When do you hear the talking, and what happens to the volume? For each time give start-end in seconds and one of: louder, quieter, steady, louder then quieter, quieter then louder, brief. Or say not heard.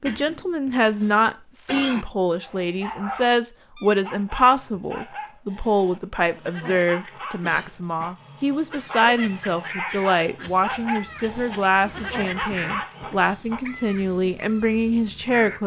0.0-15.6 steady.